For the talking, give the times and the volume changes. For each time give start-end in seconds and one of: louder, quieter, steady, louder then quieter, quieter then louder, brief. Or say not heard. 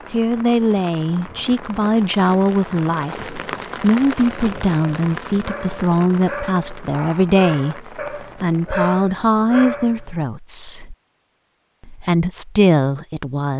0.1-10.9 steady
11.8-13.5 brief.